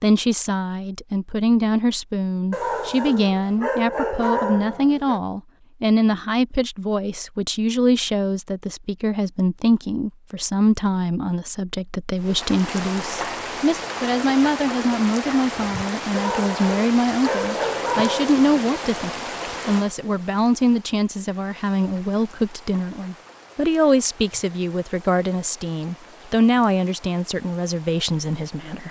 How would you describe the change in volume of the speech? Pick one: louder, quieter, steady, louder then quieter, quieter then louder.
steady.